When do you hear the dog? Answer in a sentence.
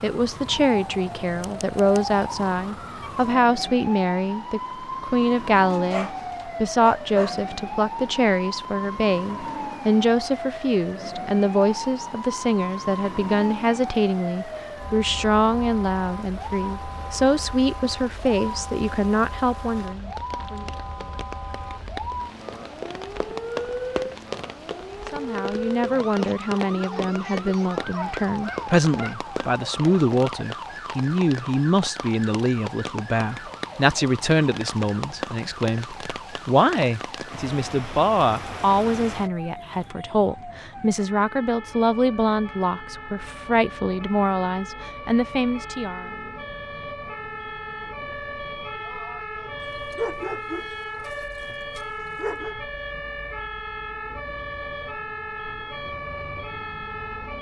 The dog can be heard from 5.7 to 7.4 s, from 27.9 to 29.1 s and from 49.6 to 52.5 s.